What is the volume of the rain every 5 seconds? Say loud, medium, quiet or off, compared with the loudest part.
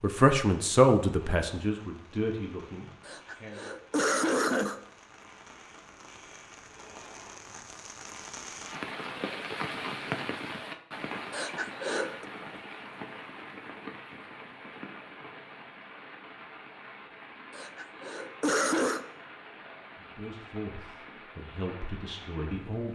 quiet, loud, loud, medium, medium.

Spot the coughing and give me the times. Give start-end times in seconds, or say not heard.
3.0-4.8, 11.3-12.2, 17.5-19.1.